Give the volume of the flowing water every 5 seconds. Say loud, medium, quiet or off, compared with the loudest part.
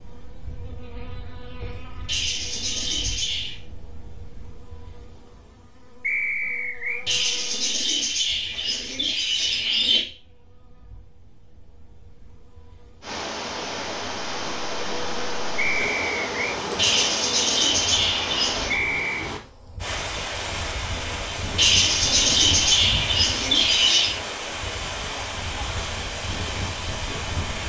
off, off, loud, loud, loud, loud.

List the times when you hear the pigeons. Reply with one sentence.
You can hear the pigeons from 2.0 to 3.6 s, from 7.0 to 10.1 s, from 16.8 to 18.8 s and from 21.6 to 24.2 s.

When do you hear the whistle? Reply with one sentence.
You can hear the whistle from 6.0 to 7.0 s, from 15.6 to 16.6 s and from 18.7 to 19.3 s.